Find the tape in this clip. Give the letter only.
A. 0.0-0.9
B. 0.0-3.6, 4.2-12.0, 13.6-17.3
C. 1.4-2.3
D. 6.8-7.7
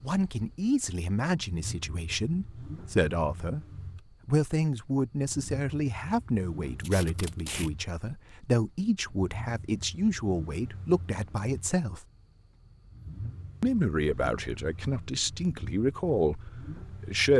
D.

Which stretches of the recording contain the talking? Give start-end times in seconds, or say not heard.
0.0-3.6, 4.2-12.0, 13.6-17.3.